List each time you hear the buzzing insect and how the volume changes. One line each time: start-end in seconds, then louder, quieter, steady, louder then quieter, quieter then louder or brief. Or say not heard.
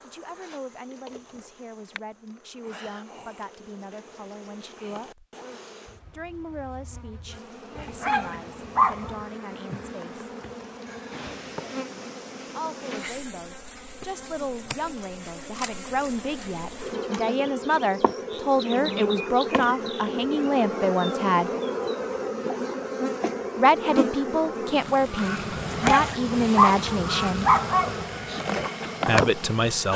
0.0-29.9 louder.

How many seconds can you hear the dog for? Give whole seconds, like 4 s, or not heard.
4 s.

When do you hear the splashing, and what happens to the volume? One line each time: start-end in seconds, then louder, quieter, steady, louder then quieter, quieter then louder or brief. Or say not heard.
not heard.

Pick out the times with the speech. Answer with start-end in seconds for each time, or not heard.
0.0-5.2, 6.1-10.3, 12.4-21.5, 23.6-27.5, 29.1-29.9.